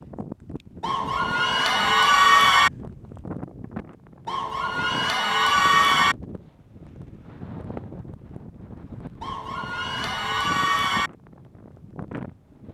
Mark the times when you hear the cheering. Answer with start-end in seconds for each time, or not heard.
0.8-2.7, 4.2-6.2, 9.2-11.1.